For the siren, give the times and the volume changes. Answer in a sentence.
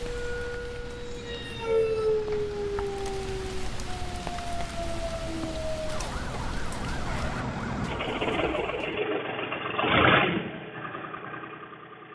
You can hear the siren from 0.0 to 9.0 s, getting quieter.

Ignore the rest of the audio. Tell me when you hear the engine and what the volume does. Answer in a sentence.
You can hear the engine from 0.0 to 12.1 s, getting louder.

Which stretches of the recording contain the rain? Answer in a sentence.
The rain can be heard from 0.0 to 7.4 s.